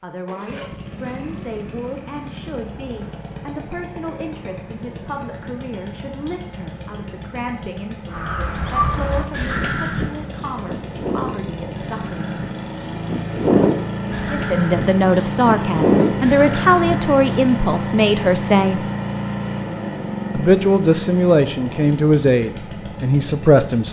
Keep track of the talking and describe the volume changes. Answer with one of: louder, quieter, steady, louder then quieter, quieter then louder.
louder.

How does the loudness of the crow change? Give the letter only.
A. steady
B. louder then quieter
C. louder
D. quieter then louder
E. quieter
D.